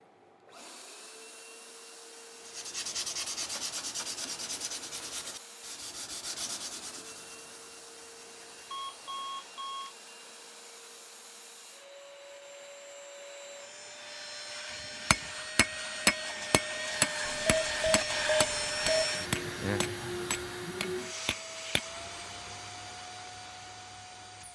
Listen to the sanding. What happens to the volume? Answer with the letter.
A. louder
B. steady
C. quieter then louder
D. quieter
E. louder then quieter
D.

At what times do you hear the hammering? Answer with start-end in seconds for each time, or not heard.
15.1-21.9.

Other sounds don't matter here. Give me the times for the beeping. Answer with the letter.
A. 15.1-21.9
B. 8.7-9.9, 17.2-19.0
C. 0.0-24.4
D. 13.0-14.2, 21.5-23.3
B.